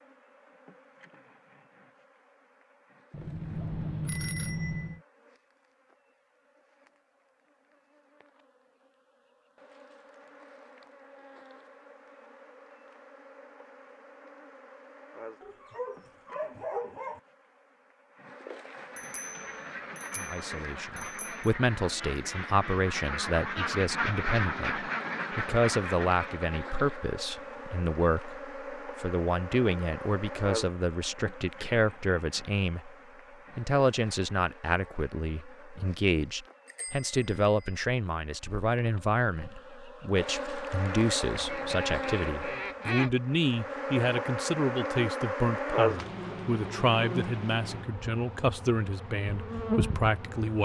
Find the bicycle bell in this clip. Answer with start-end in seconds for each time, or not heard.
3.1-5.0, 18.9-21.4, 36.6-37.8.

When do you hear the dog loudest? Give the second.
17 s.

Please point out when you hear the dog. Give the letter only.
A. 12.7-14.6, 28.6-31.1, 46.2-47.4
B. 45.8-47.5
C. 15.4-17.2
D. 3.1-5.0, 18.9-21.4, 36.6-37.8
C.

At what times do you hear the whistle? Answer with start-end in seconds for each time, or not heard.
not heard.